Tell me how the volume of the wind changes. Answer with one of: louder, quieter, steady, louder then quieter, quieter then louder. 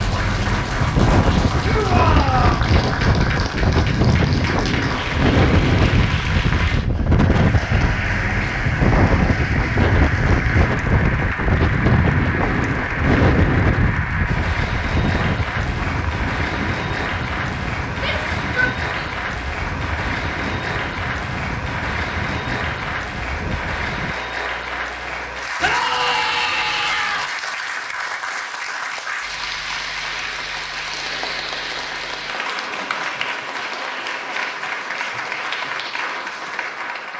quieter.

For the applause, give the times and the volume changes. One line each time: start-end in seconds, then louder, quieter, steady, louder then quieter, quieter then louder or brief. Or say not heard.
0.0-37.1 steady.